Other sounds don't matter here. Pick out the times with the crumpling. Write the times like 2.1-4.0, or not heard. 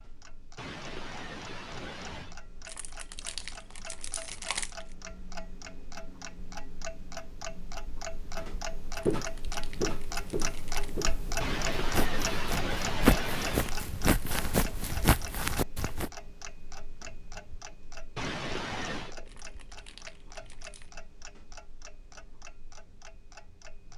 2.6-5.0, 9.2-10.9, 19.2-20.9.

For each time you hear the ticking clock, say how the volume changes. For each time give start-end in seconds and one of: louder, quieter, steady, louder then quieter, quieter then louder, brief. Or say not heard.
0.0-23.9 louder then quieter.